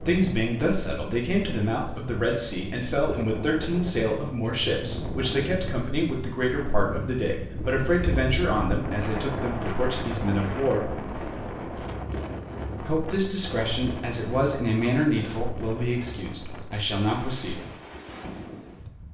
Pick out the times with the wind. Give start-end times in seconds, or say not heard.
0.0-19.1.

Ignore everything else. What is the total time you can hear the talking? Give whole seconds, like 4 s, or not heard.
16 s.